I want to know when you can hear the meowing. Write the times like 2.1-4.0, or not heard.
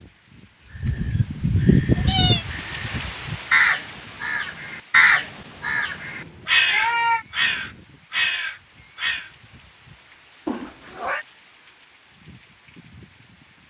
0.8-2.5, 6.2-7.2, 10.4-11.2.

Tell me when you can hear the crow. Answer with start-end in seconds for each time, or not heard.
0.7-9.3.